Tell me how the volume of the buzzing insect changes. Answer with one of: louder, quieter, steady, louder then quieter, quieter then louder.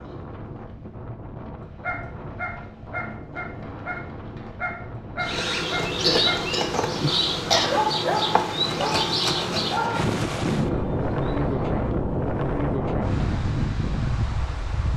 quieter.